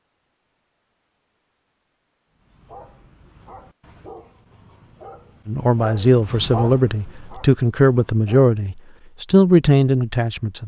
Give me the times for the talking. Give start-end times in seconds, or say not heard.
5.5-10.6.